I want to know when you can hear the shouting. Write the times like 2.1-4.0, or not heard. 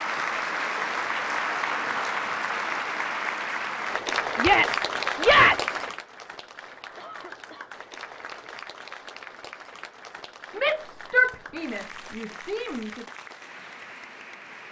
4.3-5.8, 10.6-12.9.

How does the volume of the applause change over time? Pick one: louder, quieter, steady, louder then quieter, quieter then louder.
quieter.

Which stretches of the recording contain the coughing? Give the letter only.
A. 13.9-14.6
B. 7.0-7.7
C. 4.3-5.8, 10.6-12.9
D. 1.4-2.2
B.